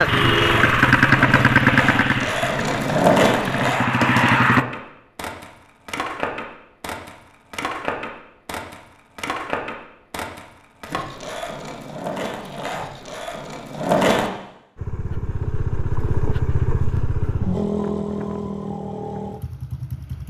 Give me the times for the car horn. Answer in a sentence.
The car horn can be heard from 0.1 to 0.8 s.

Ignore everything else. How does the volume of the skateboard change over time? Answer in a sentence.
The volume of the skateboard goes down.